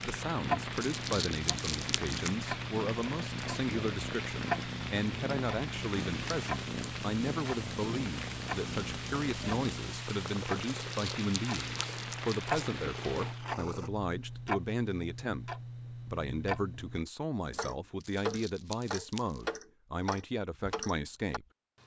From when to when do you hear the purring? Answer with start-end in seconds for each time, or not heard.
0.0-13.9.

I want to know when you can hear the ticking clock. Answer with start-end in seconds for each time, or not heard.
0.0-21.8.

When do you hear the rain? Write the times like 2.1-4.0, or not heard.
0.0-13.4.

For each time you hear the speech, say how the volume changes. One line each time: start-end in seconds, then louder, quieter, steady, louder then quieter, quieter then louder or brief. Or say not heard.
0.0-15.4 steady
16.1-21.4 steady.